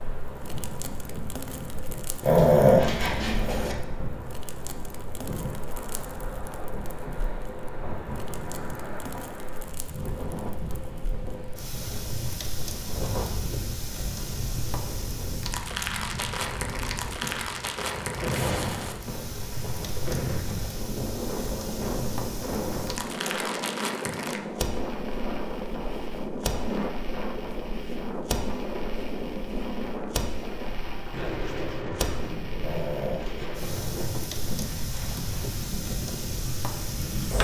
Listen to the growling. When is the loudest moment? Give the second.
3 s.